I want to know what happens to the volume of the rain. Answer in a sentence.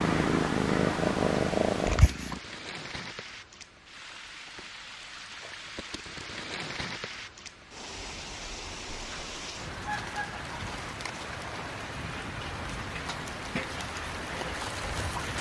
The loudness of the rain goes up.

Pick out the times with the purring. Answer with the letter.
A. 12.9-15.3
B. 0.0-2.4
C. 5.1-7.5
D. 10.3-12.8
B.